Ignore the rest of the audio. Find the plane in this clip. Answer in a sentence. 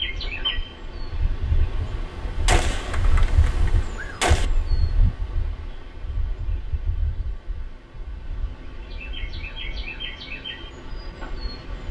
The plane can't be heard in this clip.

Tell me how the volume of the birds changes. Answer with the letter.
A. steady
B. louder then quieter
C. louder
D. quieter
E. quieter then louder
E.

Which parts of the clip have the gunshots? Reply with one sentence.
The gunshots can be heard from 2.5 to 4.5 s.